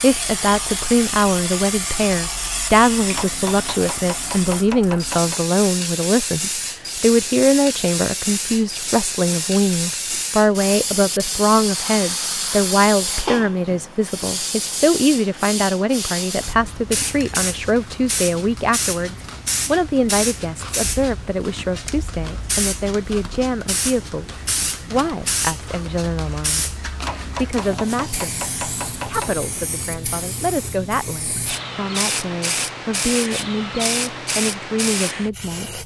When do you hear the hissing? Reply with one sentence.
You can hear the hissing from 0.0 to 35.8 s.